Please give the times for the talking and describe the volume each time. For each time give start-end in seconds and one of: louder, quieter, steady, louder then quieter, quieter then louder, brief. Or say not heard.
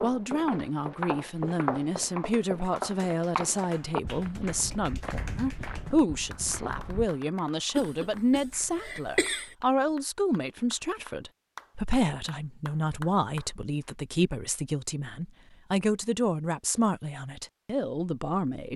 0.0-18.7 steady.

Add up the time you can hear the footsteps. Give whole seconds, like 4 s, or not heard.
7 s.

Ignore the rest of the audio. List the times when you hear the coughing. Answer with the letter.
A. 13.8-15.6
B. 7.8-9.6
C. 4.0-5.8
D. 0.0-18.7
B.